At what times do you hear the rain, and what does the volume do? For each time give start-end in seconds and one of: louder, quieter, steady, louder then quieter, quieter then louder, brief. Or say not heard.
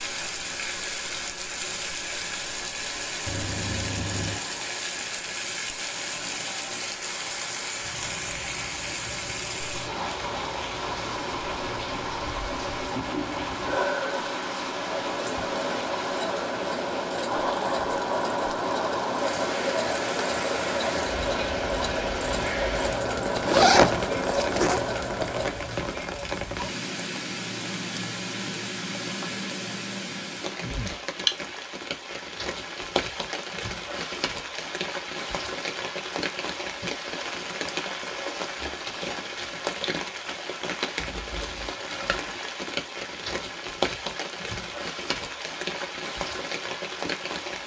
0.0-47.6 steady.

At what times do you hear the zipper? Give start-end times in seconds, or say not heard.
3.2-4.4, 23.4-24.8, 41.0-41.8.